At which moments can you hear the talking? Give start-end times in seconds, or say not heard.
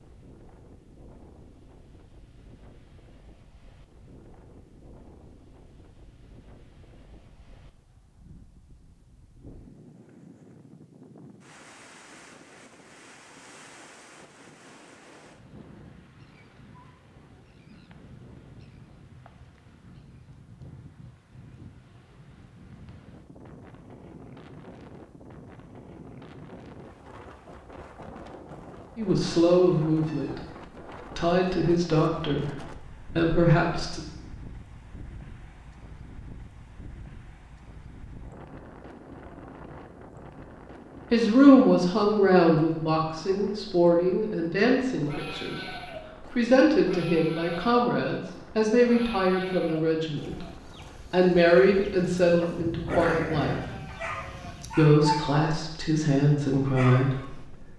28.9-34.0, 41.1-50.5, 51.1-53.5, 54.8-57.7.